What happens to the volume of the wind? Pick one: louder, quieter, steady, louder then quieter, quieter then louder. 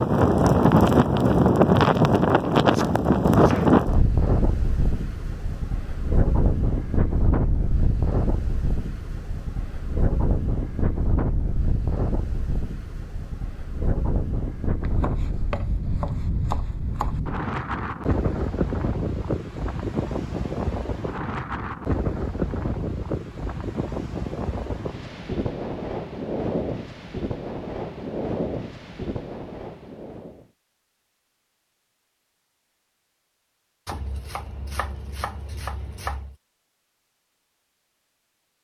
quieter.